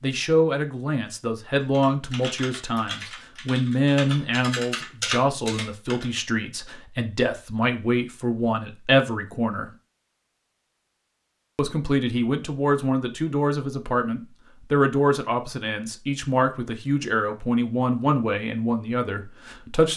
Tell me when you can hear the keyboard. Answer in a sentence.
You can hear the keyboard from 1.7 to 6.2 s.